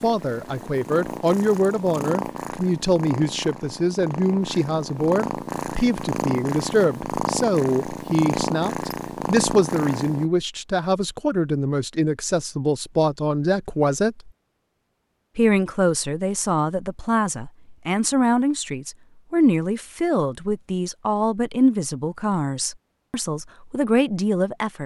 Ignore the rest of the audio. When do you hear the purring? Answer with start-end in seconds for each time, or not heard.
0.0-10.3.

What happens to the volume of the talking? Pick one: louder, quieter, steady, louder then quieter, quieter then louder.
steady.